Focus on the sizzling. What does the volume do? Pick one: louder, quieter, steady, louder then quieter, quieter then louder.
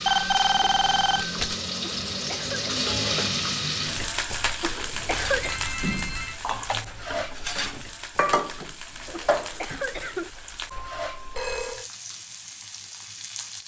quieter.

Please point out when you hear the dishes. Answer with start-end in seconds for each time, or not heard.
4.8-9.8.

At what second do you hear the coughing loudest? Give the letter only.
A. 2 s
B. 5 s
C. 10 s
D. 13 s
B.